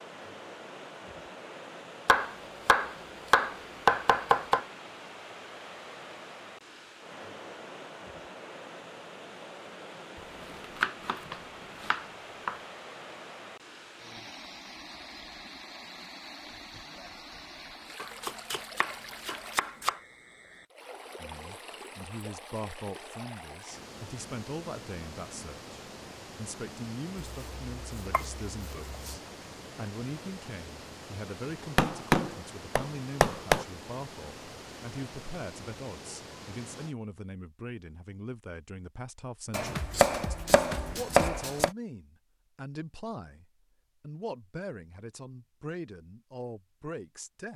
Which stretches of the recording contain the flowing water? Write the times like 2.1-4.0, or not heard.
0.0-37.0.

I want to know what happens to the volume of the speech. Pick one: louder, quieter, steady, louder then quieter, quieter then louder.
steady.